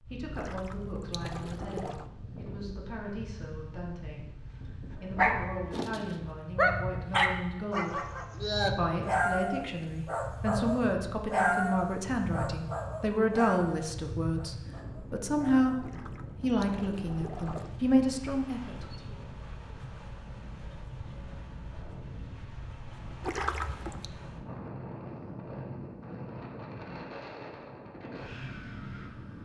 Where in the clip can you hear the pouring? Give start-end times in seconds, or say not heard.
0.3-2.0, 15.8-17.7, 23.2-24.1.